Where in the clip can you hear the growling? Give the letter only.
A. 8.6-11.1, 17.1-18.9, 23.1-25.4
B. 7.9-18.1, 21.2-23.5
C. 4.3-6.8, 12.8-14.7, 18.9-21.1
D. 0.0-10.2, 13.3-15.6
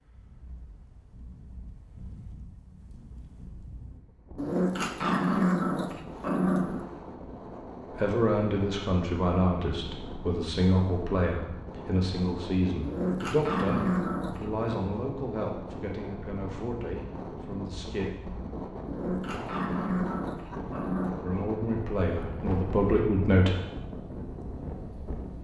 C.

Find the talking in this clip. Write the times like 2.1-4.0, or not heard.
7.9-18.1, 21.2-23.5.